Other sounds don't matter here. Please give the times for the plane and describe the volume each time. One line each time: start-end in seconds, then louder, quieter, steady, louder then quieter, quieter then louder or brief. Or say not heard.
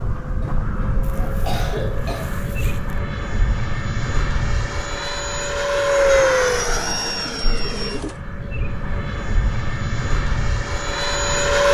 0.0-11.6 louder then quieter.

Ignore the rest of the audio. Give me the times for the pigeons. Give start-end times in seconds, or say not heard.
1.0-3.0, 6.7-8.2.